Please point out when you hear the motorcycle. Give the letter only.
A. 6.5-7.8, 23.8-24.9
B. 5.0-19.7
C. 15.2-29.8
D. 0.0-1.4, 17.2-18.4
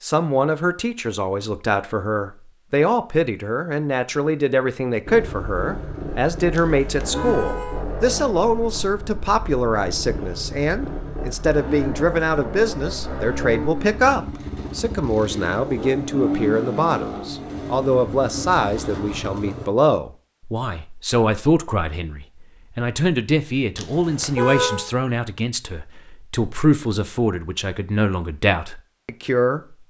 B.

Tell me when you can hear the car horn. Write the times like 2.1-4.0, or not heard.
6.5-7.8, 23.8-24.9.